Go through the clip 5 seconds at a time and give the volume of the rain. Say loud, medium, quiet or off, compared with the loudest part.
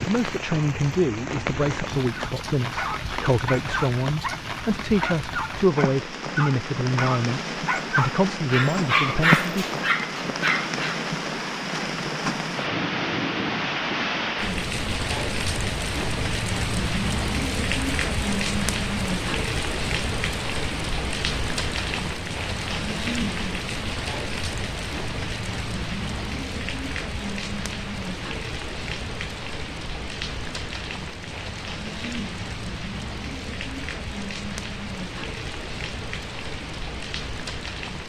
medium, loud, loud, loud, loud, medium, medium, medium.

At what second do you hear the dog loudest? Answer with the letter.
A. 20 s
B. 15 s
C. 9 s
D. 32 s
C.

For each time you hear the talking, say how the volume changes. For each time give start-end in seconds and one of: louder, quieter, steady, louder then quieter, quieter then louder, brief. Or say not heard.
0.0-9.7 steady.